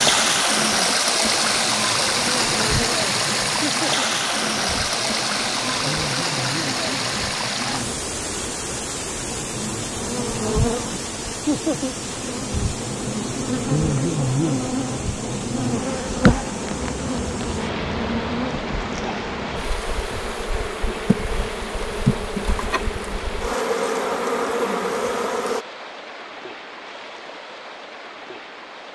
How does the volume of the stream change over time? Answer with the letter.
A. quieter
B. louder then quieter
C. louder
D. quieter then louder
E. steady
A.